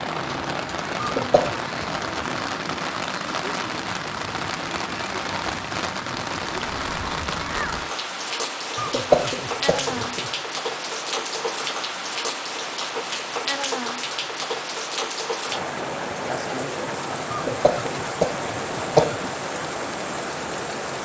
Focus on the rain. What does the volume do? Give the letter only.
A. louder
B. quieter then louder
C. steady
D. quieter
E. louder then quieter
C.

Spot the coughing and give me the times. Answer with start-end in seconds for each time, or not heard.
1.0-1.6, 8.8-10.3, 17.3-19.3.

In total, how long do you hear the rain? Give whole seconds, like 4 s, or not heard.
21 s.